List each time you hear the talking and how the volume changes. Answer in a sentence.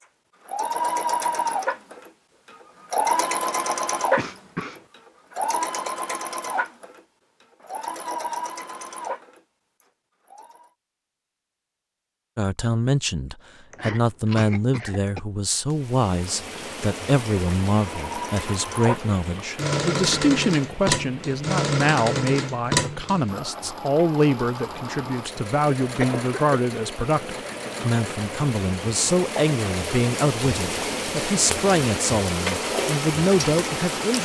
You can hear the talking from 12.3 to 34.1 s, at a steady volume.